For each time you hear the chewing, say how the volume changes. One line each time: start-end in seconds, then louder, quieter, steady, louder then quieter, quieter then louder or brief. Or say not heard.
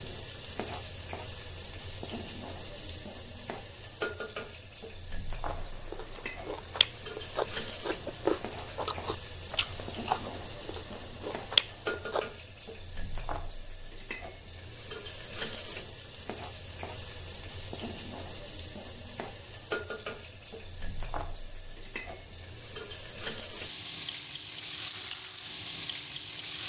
5.5-12.2 louder.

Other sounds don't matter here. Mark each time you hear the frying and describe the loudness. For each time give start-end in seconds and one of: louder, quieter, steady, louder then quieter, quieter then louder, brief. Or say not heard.
0.0-26.6 steady.